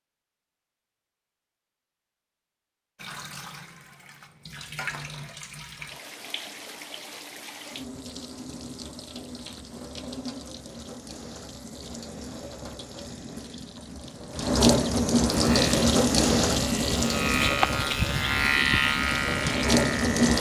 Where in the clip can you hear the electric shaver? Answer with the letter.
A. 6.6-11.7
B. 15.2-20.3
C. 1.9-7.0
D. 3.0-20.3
B.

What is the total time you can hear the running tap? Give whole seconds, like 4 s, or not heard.
17 s.